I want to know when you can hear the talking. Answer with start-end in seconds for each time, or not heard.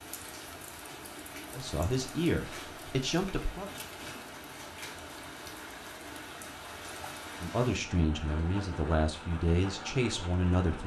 1.5-3.7, 7.4-10.8.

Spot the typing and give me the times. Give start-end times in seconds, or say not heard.
not heard.